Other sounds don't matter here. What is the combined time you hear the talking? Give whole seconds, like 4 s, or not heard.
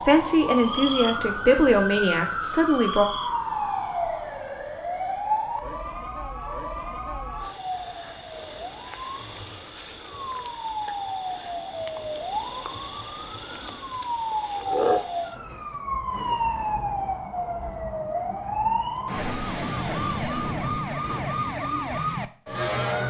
3 s.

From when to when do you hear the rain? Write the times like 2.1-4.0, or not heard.
not heard.